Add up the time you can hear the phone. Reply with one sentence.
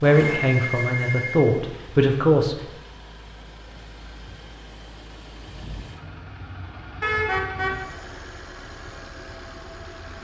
You can hear the phone for 2 seconds altogether.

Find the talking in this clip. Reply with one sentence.
The talking can be heard from 0.0 to 2.5 s.